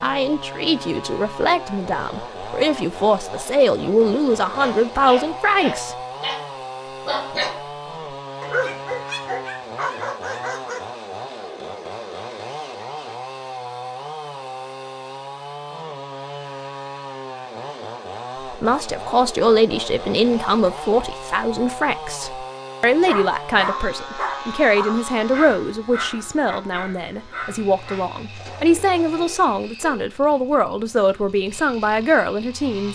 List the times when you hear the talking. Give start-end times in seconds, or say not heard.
0.0-6.0, 18.5-32.9.